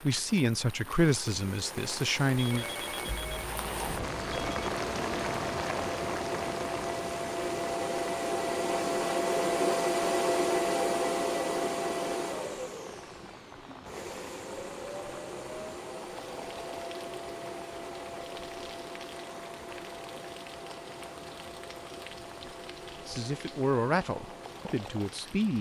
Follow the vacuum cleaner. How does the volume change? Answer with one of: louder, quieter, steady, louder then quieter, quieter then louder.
louder then quieter.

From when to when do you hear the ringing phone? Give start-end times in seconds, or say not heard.
2.4-4.8.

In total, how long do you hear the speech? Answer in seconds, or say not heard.
5 s.